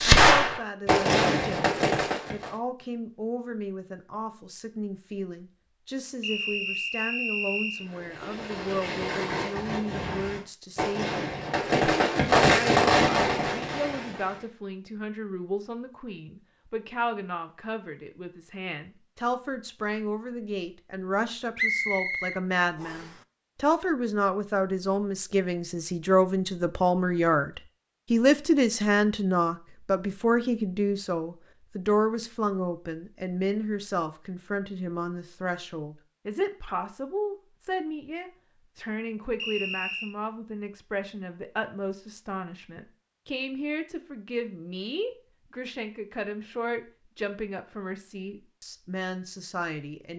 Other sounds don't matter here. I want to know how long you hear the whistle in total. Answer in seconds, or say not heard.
4 s.